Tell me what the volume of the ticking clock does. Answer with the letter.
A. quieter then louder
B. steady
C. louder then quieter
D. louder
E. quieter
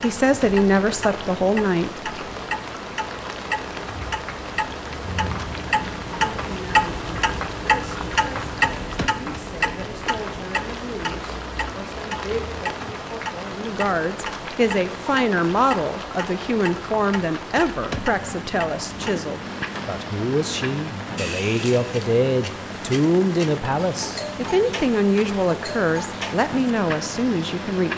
C.